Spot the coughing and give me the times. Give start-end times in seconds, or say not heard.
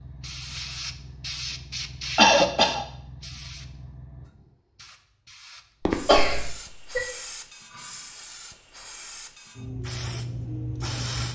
2.1-2.9, 5.8-7.0.